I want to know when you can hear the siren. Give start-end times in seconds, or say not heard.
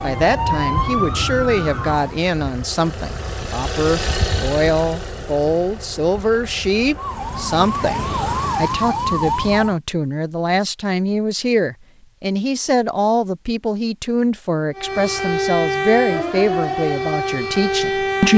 0.0-2.2, 7.0-9.8, 14.8-18.3.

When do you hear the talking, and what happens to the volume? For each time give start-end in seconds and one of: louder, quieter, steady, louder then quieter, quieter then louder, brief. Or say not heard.
0.0-18.3 steady.